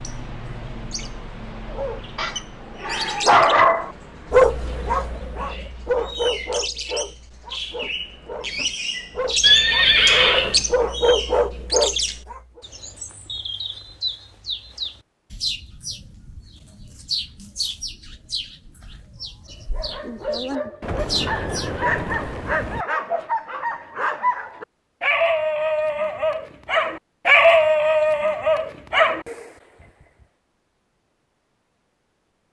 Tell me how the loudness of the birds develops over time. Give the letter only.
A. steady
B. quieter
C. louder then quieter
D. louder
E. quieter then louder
C.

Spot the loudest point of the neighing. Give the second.
10 s.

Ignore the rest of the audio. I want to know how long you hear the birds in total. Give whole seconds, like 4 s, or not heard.
22 s.